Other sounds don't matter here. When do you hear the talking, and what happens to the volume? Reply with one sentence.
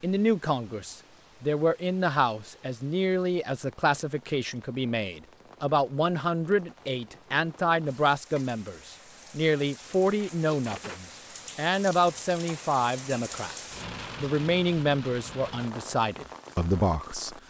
You can hear the talking from 0.0 to 17.4 s, at a steady volume.